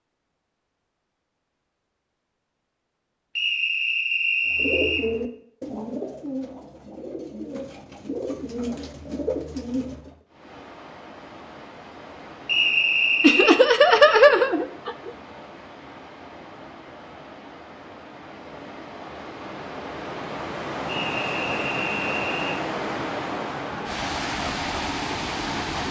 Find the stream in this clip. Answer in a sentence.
The stream can be heard from 10.2 to 25.8 s.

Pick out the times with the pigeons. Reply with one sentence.
You can hear the pigeons from 4.5 to 10.2 s.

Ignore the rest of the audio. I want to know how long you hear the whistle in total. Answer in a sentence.
You can hear the whistle for 5 seconds altogether.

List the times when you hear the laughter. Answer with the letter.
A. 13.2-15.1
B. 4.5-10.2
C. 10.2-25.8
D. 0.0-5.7
A.